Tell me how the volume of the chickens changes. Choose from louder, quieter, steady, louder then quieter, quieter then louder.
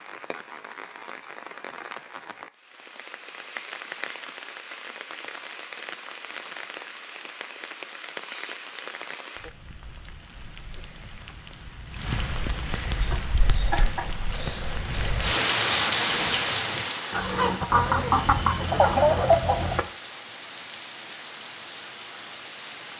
louder.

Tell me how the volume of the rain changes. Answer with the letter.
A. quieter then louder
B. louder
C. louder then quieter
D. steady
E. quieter
C.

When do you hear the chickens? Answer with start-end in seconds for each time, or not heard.
13.0-19.9.